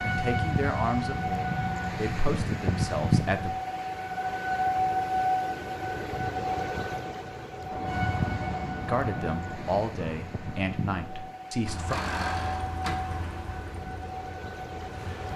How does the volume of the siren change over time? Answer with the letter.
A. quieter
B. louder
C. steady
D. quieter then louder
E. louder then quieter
A.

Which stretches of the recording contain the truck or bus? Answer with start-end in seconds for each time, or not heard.
11.7-15.3.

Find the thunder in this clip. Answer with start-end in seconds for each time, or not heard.
7.7-11.3.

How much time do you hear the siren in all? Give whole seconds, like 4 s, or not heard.
15 s.